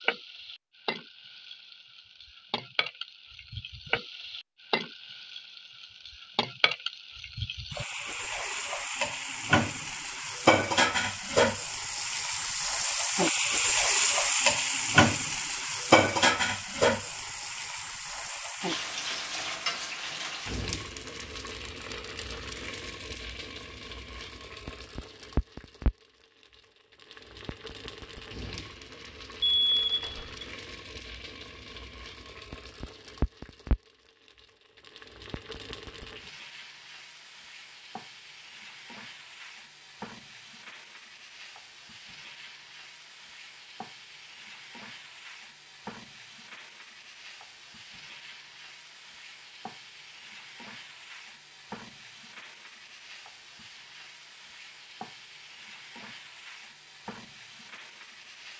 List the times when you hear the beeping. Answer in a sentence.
You can hear the beeping from 29.4 to 30.3 s.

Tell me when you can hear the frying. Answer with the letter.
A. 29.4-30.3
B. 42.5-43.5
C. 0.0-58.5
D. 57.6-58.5
C.